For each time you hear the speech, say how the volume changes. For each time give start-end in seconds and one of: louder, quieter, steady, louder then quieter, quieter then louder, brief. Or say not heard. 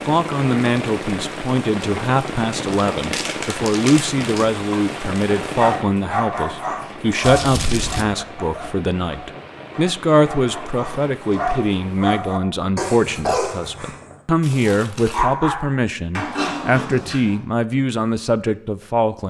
0.1-19.2 steady.